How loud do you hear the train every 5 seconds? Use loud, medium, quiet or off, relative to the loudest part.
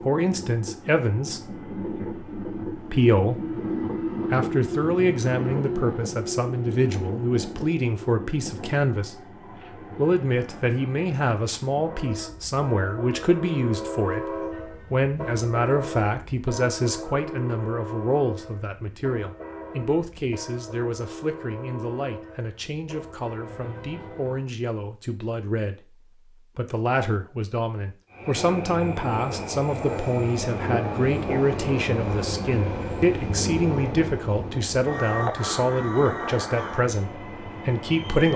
loud, loud, medium, medium, medium, loud, loud, loud.